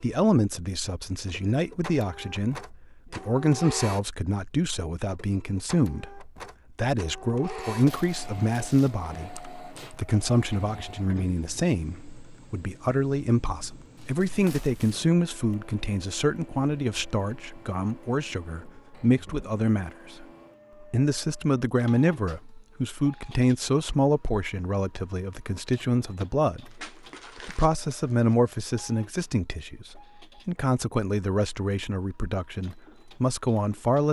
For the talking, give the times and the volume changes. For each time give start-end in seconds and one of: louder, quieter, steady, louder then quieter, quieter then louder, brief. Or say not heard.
0.0-34.0 steady.